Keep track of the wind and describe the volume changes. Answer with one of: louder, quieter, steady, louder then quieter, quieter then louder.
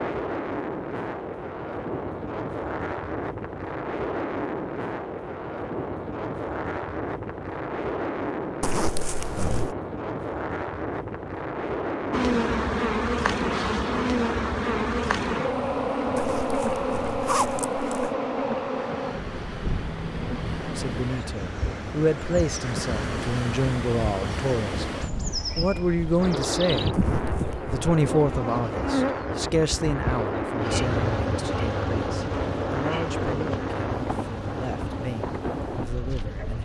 quieter then louder.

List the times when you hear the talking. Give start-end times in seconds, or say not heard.
20.8-26.9, 27.7-36.6.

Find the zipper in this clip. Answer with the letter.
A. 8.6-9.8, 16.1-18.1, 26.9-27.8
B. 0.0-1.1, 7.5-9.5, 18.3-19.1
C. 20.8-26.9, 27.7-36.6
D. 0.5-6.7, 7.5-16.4
A.